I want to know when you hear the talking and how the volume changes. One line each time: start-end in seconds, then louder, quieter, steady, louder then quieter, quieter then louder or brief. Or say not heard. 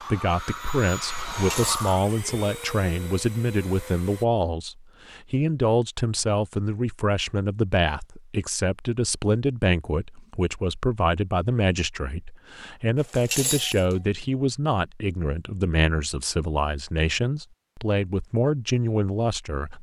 0.1-19.7 steady.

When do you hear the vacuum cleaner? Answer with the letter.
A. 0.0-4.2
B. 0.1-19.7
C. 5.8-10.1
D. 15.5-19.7
A.